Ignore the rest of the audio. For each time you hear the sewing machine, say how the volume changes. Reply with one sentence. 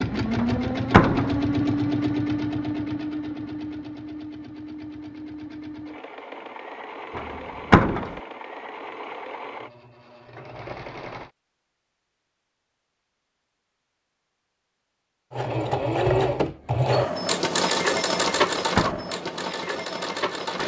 You can hear the sewing machine from 0.0 to 11.3 s, getting quieter; and from 15.3 to 20.6 s, getting quieter.